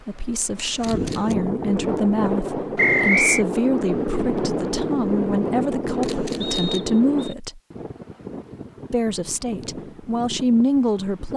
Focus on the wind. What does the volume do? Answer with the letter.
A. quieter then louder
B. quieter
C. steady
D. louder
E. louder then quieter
B.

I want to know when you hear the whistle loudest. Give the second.
3 s.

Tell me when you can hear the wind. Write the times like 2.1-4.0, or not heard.
0.0-11.3.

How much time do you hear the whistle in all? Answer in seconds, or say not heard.
2 s.